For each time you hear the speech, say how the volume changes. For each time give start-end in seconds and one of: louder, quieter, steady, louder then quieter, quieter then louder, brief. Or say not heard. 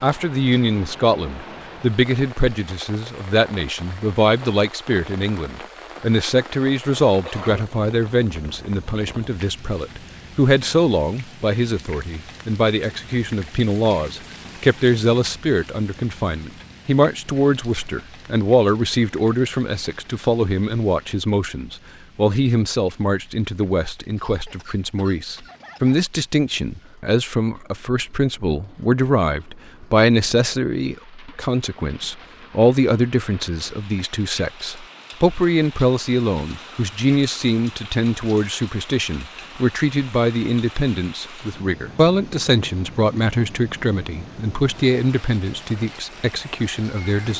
0.0-47.3 steady.